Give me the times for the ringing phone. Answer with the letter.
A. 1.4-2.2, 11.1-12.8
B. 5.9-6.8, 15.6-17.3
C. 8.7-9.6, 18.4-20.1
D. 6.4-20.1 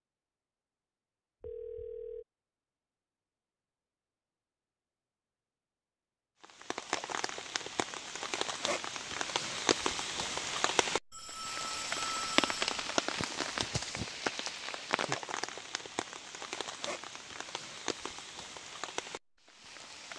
A.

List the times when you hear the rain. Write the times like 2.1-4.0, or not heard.
6.4-20.1.